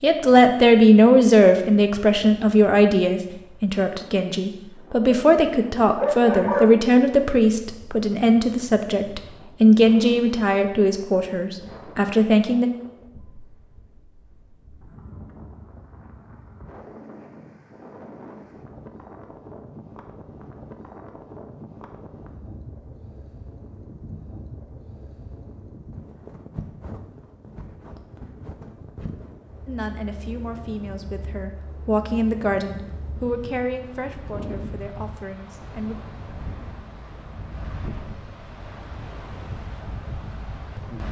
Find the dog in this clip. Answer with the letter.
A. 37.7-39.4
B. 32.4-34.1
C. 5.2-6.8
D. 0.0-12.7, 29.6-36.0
C.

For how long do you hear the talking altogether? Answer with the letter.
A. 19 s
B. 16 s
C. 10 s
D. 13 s
A.